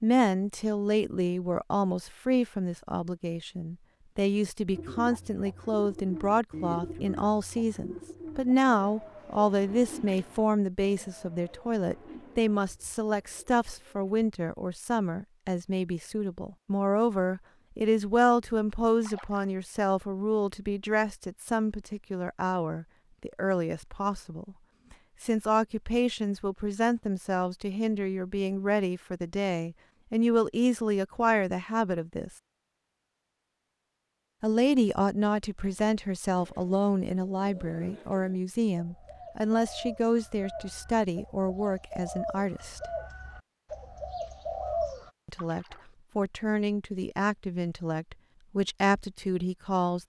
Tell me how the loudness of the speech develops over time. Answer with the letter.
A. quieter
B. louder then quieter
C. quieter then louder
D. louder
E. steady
E.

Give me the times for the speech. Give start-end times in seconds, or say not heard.
0.0-24.6, 25.2-32.3, 34.4-42.8, 45.2-50.0.